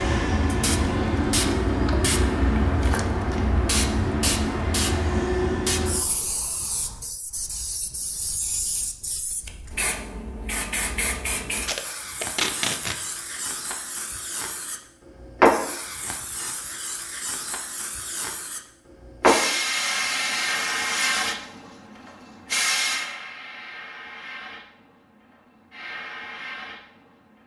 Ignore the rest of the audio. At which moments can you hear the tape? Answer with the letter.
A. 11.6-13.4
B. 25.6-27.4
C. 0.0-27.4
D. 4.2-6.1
A.